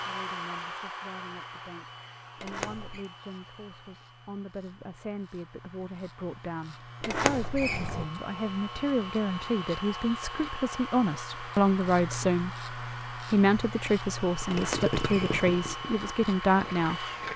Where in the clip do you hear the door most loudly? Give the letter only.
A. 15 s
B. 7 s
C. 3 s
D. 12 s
B.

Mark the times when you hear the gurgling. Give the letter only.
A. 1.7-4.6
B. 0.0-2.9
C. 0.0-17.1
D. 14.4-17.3
D.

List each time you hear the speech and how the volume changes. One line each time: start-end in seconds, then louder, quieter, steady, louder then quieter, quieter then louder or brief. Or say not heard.
0.0-17.1 louder.